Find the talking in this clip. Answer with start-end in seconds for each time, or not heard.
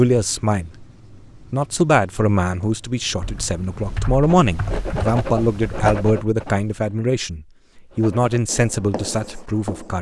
0.0-0.8, 1.5-9.9.